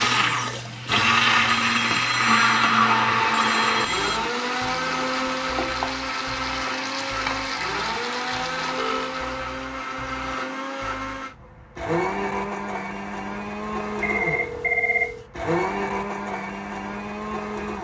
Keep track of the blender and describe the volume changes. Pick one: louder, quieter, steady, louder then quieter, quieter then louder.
quieter.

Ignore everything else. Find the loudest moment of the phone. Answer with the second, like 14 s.
15 s.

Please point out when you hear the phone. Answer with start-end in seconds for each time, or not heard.
1.4-4.2, 8.8-9.2, 14.0-15.2.